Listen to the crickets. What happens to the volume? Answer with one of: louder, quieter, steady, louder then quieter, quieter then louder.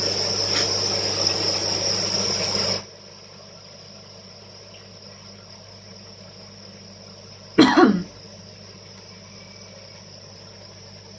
quieter.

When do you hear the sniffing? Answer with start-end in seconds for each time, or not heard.
0.1-0.7, 7.5-8.1.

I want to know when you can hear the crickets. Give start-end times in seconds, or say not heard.
0.0-11.1.